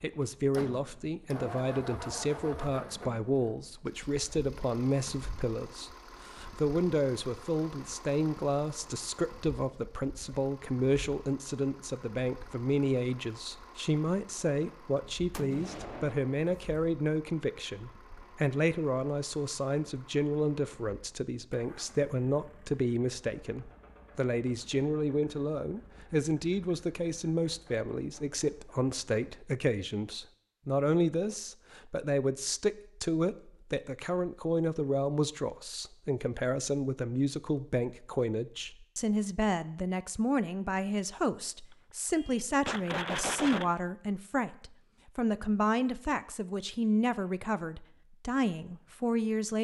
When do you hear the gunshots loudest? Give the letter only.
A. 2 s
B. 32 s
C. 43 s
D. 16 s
C.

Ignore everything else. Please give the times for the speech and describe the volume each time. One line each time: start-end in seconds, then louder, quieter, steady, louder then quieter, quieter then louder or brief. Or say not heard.
0.0-49.5 steady.